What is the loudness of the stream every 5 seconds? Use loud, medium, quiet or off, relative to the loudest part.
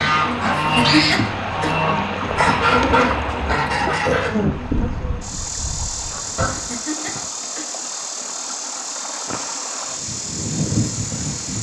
loud, medium, quiet.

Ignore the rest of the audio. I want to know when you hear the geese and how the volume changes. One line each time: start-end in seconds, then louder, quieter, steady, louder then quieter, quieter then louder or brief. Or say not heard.
0.0-6.8 quieter
9.8-11.5 brief.